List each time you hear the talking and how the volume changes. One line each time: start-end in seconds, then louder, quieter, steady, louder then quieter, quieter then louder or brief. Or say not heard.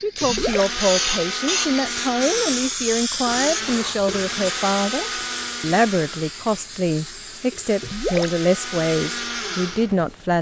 0.0-10.3 steady.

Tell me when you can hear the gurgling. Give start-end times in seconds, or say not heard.
0.2-0.7, 7.8-8.3.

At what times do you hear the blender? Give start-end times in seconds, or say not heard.
0.2-10.3.